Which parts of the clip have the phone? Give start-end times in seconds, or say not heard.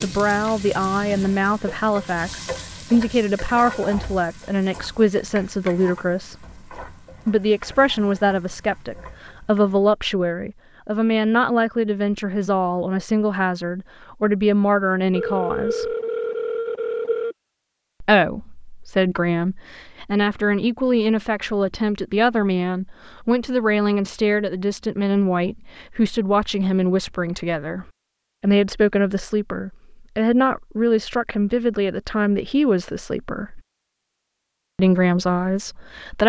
15.1-17.4.